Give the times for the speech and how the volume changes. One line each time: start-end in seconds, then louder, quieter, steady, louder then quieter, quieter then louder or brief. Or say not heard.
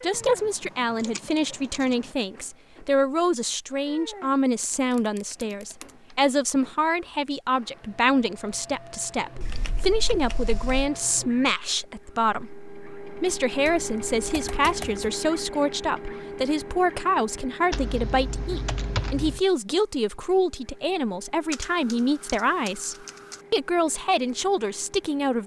0.0-12.5 steady
13.2-25.4 steady.